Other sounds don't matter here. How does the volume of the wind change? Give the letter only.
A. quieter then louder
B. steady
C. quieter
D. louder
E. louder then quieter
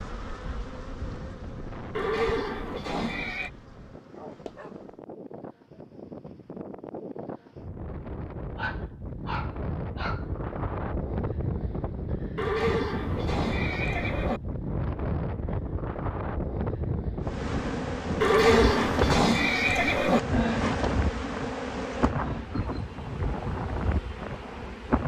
D.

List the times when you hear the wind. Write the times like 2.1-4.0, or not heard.
0.0-25.0.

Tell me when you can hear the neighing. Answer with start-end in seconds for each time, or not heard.
1.9-3.5, 12.3-14.4, 18.2-20.2.